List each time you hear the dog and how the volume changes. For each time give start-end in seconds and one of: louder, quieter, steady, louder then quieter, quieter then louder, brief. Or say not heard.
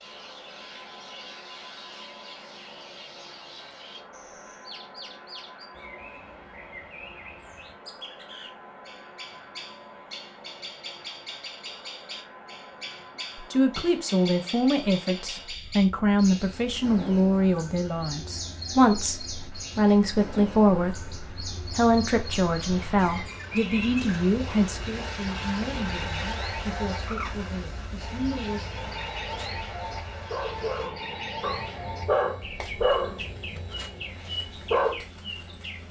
29.2-35.0 louder then quieter.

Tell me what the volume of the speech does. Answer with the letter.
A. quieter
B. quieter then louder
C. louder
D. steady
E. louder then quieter
A.